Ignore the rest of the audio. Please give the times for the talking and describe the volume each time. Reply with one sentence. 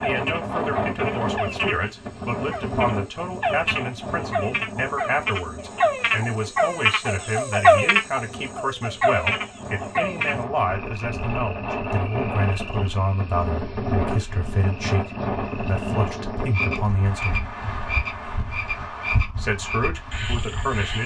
The talking can be heard from 0.0 to 17.4 s, at a steady volume; and briefly from 19.2 to 21.0 s.